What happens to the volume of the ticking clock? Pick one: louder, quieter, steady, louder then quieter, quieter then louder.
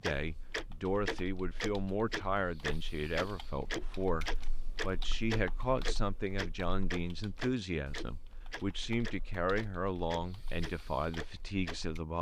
quieter.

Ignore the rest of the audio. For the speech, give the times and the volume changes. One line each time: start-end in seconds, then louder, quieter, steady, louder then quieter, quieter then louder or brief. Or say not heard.
0.0-12.1 steady.